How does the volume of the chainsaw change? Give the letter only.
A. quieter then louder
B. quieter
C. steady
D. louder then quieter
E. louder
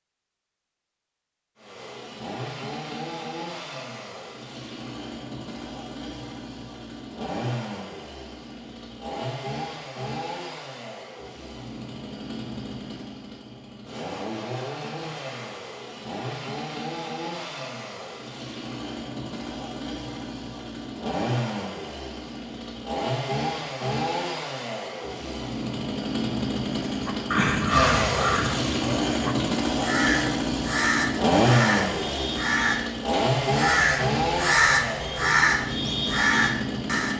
E.